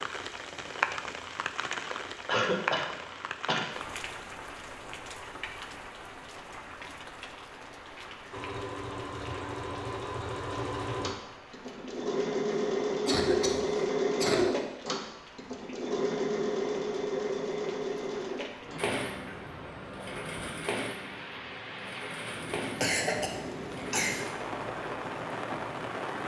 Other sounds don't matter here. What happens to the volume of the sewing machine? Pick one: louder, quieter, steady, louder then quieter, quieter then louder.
louder then quieter.